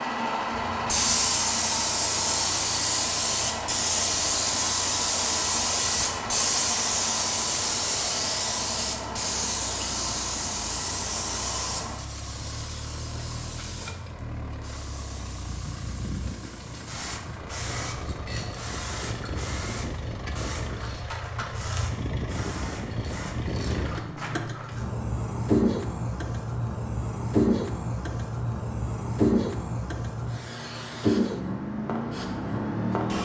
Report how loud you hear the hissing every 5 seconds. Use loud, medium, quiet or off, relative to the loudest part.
loud, loud, medium, quiet, quiet, medium, medium.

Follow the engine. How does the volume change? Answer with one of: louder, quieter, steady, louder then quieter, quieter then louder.
louder.